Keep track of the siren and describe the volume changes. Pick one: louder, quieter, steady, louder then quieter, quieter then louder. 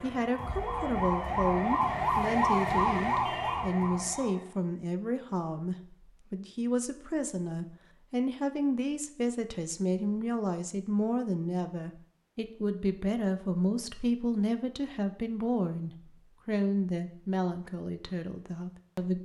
louder then quieter.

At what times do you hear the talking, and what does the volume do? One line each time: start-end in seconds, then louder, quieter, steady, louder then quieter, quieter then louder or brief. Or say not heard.
0.0-19.2 steady.